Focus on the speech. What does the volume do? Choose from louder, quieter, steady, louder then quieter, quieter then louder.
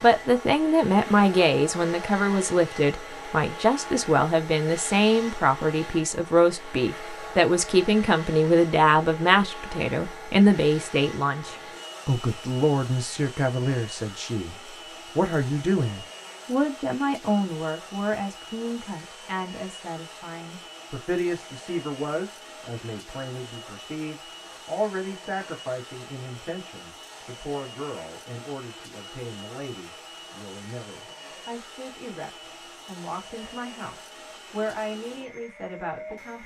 quieter.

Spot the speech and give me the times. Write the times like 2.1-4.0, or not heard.
0.0-36.4.